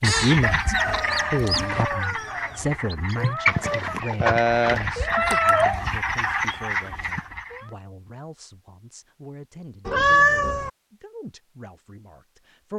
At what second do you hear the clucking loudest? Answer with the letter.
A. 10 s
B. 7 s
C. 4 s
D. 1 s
C.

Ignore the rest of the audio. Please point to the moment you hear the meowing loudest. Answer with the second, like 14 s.
10 s.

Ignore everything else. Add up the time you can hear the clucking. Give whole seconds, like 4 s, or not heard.
7 s.